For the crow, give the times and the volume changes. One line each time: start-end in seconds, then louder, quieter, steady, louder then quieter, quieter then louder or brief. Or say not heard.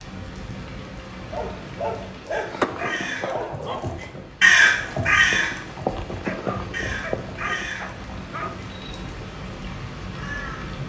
2.3-10.8 louder then quieter.